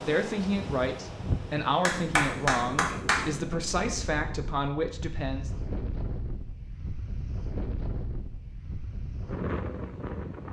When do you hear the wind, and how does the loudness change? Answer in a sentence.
You can hear the wind from 0.0 to 10.4 s, at a steady volume.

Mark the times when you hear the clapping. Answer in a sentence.
The clapping can be heard from 1.8 to 3.3 s.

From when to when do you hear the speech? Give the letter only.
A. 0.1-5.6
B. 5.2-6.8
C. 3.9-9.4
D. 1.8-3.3
A.